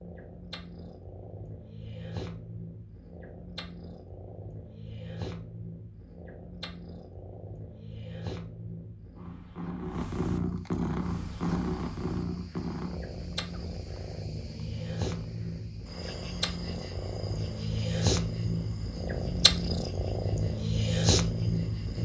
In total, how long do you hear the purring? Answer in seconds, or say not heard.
22 s.